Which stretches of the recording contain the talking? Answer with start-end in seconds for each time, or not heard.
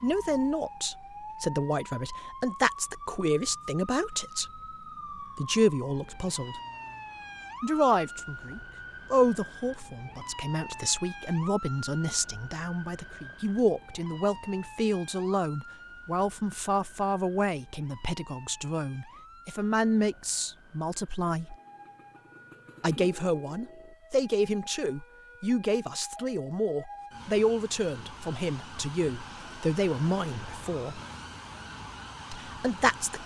0.0-4.6, 5.3-6.6, 7.6-21.6, 22.8-31.0, 32.3-33.2.